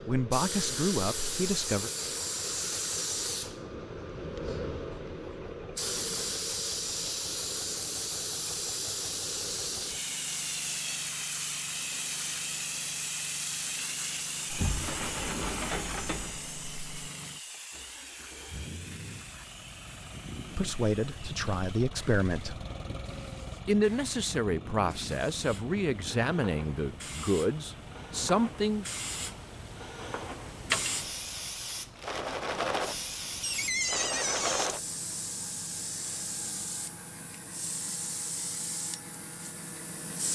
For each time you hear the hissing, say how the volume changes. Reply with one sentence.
The hissing can be heard from 0.0 to 40.2 s, getting quieter then louder.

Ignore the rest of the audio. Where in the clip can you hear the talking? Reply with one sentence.
The talking can be heard from 0.1 to 1.9 s, from 20.6 to 22.6 s and from 23.6 to 28.9 s.